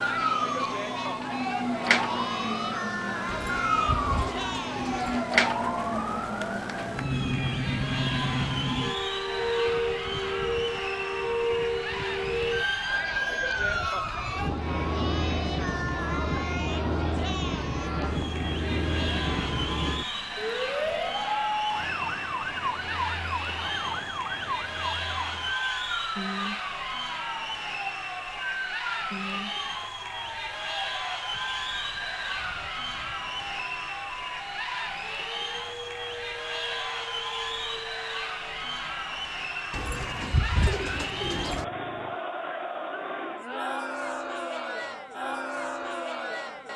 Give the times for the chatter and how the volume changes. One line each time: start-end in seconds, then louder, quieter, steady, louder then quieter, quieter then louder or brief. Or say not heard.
0.0-46.7 steady.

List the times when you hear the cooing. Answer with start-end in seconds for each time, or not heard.
3.2-5.2, 39.7-41.6.